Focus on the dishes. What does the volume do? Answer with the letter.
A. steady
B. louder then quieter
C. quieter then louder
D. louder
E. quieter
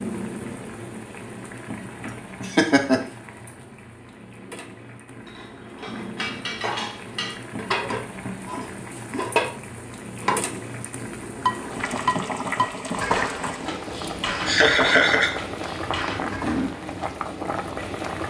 B.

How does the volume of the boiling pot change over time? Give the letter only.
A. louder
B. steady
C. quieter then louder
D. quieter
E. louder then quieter
A.